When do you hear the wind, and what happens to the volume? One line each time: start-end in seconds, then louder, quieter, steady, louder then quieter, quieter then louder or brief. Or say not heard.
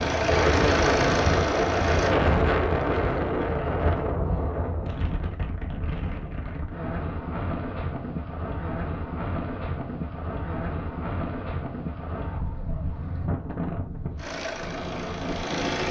0.0-15.8 quieter.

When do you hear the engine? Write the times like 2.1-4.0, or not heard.
0.0-2.1, 14.2-15.8.